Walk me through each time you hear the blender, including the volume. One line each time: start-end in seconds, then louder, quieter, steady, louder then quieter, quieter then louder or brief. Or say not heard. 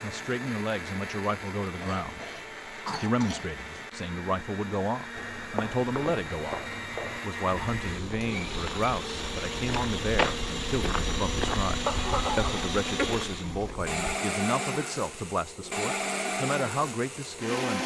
0.0-17.8 louder.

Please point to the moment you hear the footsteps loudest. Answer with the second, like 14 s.
10 s.